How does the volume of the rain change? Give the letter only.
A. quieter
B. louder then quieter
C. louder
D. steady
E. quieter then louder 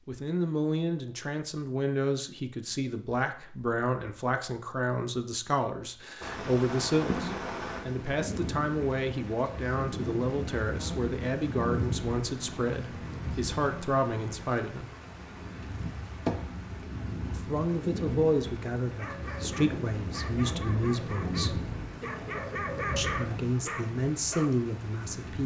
D.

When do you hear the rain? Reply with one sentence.
The rain can be heard from 6.2 to 25.4 s.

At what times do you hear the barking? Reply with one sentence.
You can hear the barking from 18.9 to 24.6 s.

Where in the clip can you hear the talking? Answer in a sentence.
The talking can be heard from 0.1 to 14.9 s, from 17.3 to 21.6 s and from 22.9 to 25.4 s.